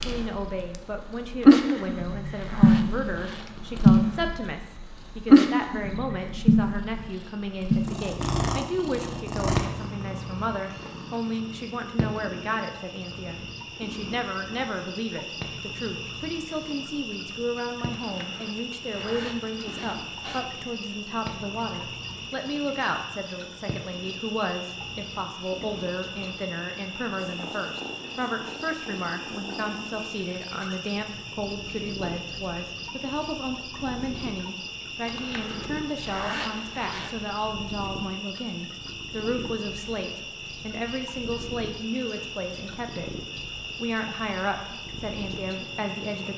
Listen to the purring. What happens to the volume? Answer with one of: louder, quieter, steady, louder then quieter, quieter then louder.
quieter.